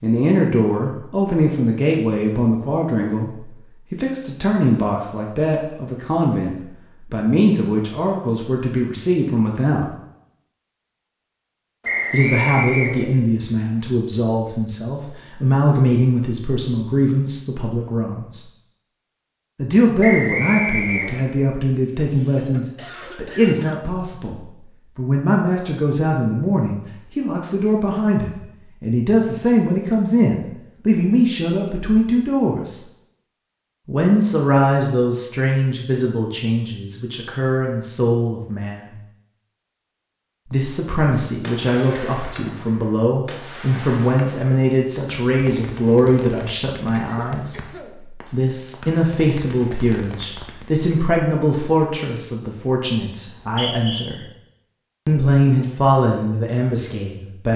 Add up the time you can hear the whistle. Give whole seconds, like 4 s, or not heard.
3 s.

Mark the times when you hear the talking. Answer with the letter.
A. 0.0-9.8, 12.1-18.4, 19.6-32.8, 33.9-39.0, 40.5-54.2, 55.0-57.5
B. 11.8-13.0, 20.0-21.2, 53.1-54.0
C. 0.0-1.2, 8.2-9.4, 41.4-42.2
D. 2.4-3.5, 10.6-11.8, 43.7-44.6
A.